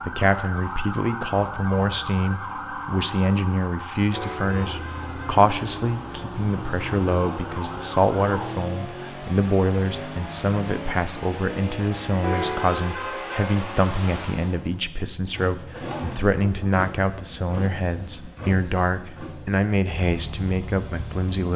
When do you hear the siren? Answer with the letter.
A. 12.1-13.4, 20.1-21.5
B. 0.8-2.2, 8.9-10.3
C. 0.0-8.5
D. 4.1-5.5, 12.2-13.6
C.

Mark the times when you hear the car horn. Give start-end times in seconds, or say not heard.
4.1-5.5, 12.2-13.6.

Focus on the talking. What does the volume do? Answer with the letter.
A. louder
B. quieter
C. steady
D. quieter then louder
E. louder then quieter
C.